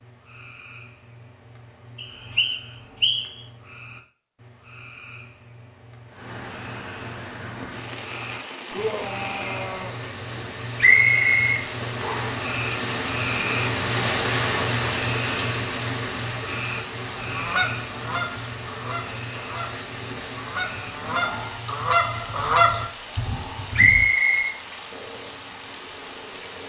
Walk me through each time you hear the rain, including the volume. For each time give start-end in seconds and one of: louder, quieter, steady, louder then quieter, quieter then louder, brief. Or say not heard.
6.1-26.6 louder then quieter.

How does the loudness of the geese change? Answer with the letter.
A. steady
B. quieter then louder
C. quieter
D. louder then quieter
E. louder
B.